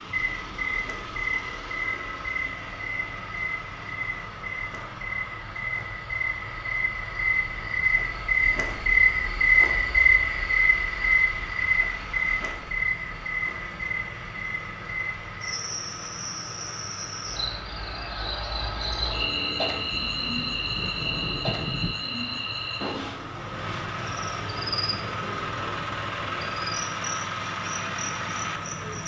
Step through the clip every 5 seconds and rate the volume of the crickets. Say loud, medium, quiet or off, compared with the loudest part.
medium, loud, loud, medium, medium, quiet.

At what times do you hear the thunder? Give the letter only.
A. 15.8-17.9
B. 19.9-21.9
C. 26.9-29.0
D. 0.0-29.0
B.